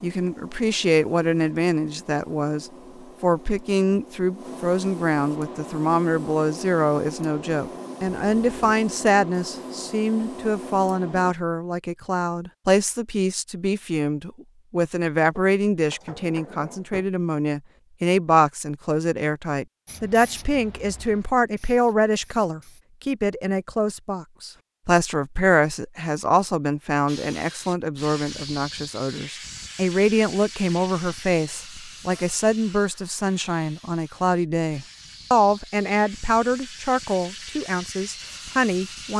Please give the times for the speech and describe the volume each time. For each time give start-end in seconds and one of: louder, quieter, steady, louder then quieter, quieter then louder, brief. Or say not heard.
0.0-39.1 steady.